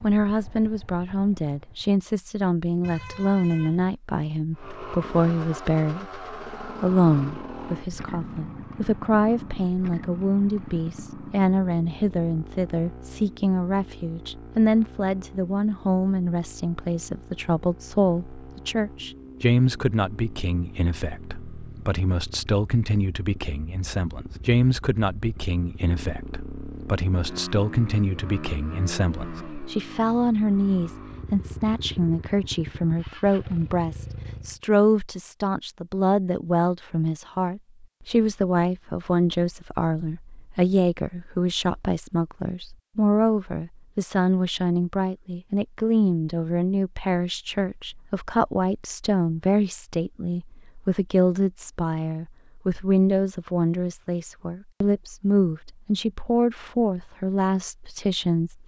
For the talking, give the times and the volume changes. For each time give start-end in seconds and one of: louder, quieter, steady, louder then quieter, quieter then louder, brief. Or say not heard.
0.0-58.6 steady.